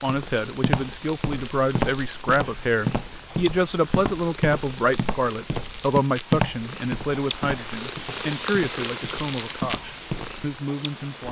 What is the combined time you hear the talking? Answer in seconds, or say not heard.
11 s.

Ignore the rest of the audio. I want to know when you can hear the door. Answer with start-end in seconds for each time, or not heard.
not heard.